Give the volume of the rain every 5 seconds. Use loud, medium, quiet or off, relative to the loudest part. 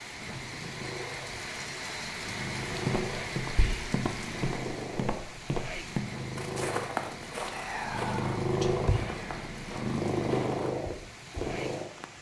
loud, medium, medium.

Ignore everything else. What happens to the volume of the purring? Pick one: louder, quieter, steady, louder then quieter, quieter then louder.
louder.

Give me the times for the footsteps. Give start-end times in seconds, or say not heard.
2.9-11.6.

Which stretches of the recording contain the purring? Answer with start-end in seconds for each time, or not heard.
0.3-12.1.